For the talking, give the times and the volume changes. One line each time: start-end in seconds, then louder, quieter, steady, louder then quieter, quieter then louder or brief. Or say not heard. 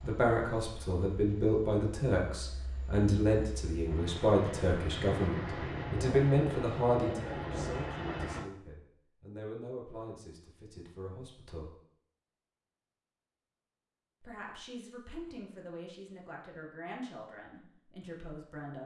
0.0-11.8 quieter
14.2-18.8 steady.